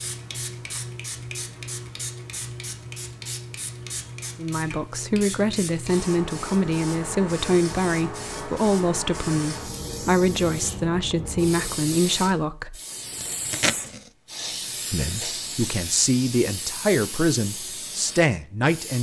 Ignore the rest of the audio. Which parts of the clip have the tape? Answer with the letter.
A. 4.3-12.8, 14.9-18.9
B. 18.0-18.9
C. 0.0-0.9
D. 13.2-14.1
D.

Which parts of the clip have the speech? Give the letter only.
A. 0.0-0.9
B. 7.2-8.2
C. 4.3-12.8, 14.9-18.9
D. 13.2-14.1
C.